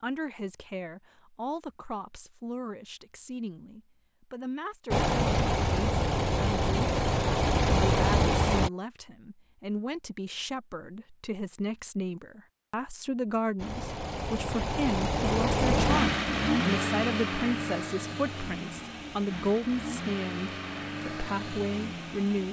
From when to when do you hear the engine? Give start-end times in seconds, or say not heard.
4.9-8.7, 13.6-22.4.